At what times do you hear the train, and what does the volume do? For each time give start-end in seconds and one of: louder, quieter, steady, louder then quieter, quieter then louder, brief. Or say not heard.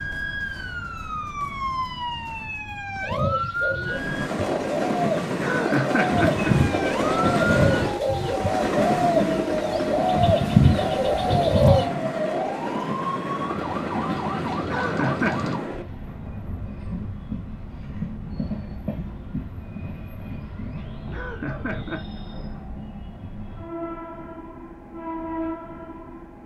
3.8-26.4 quieter.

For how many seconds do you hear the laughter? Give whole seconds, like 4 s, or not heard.
3 s.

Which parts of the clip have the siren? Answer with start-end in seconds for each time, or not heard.
0.0-4.3, 6.4-15.6.